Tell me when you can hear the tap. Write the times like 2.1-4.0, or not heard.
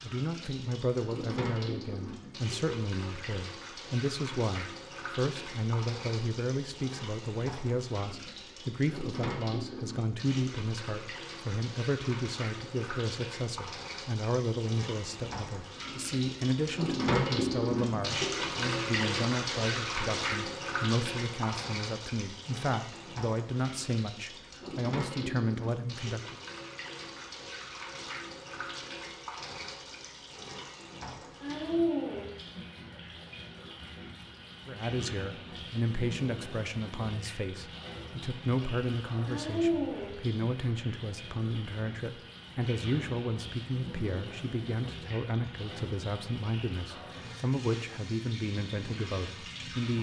0.0-49.9.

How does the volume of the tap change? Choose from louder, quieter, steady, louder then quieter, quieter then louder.
louder then quieter.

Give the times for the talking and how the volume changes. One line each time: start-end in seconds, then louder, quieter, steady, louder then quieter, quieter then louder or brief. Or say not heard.
0.0-26.4 steady
34.6-49.9 steady.